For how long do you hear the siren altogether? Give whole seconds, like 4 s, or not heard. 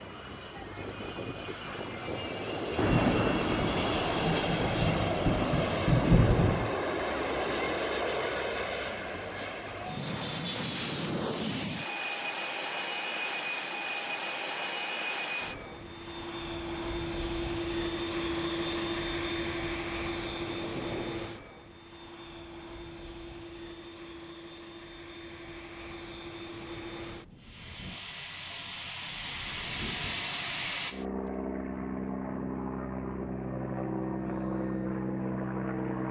not heard.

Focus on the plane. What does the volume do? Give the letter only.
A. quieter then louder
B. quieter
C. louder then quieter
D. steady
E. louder
A.